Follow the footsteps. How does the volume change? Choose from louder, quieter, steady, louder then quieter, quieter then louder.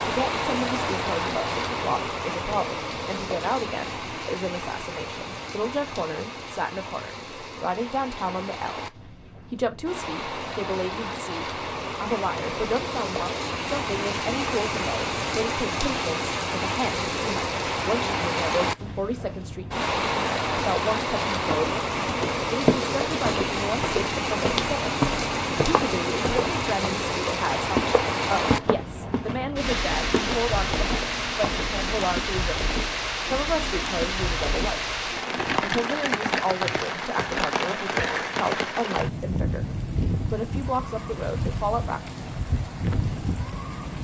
quieter.